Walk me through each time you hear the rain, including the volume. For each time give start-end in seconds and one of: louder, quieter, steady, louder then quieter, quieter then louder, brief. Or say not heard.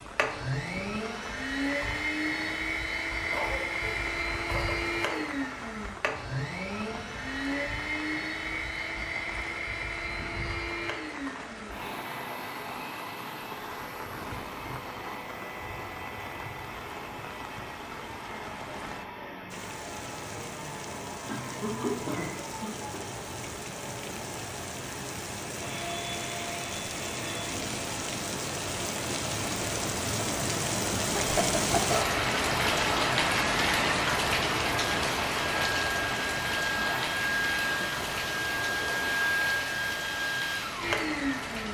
0.0-41.7 louder.